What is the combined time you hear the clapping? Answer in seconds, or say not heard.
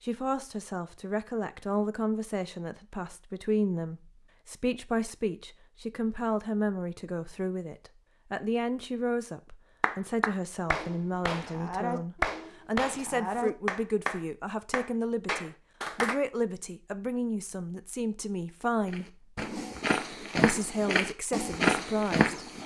6 s.